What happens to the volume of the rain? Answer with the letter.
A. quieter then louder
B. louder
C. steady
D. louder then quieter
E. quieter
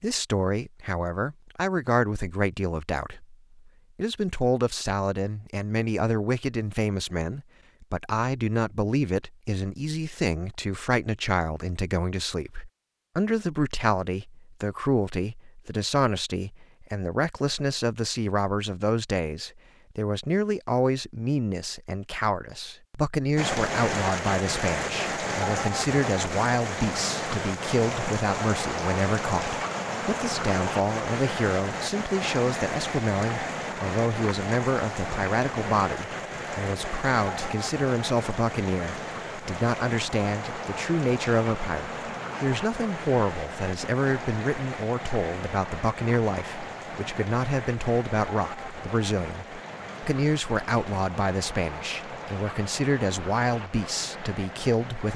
E.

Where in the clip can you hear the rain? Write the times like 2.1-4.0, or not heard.
23.4-55.1.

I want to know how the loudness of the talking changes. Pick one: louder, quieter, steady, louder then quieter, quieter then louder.
steady.